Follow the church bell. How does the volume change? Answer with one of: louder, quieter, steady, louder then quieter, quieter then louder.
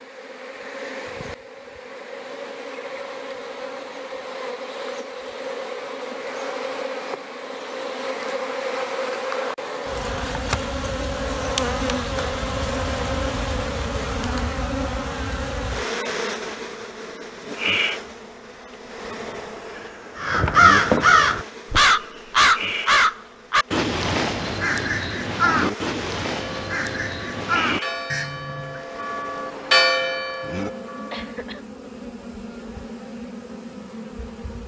louder then quieter.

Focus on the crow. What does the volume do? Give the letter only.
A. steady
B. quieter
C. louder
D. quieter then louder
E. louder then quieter
B.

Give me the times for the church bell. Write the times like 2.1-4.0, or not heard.
26.4-31.4.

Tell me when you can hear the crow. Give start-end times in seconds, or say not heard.
20.1-28.9.